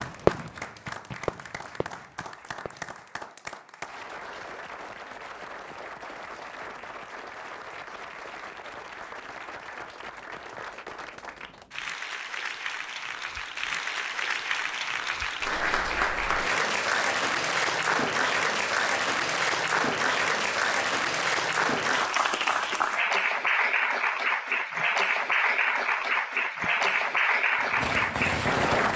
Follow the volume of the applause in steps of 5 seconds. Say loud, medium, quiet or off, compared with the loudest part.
quiet, quiet, medium, loud, loud, loud.